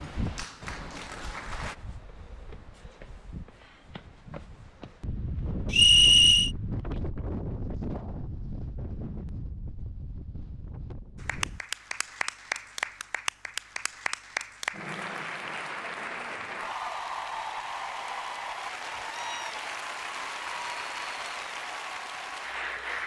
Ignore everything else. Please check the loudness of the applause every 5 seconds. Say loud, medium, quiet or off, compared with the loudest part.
medium, off, loud, loud, loud.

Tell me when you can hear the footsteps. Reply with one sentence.
The footsteps can't be heard in this clip.